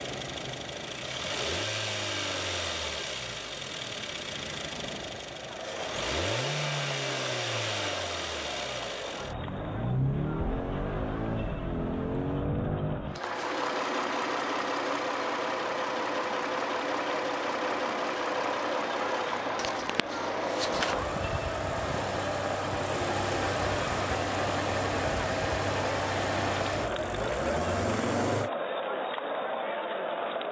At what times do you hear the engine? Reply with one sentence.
The engine can be heard from 0.0 to 28.5 s.